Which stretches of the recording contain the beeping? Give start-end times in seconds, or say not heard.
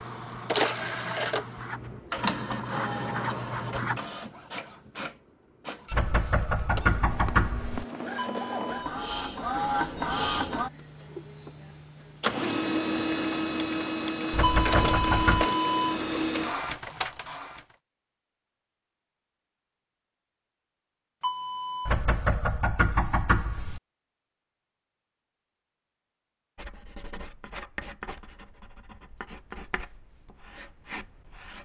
8.2-8.9, 14.4-16.0, 21.2-21.9.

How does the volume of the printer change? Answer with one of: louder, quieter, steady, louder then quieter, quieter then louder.
quieter then louder.